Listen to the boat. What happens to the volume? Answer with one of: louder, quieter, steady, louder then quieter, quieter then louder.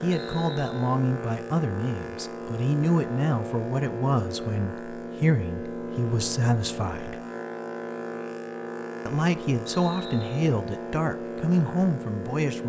steady.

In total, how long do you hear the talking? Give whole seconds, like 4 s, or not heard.
11 s.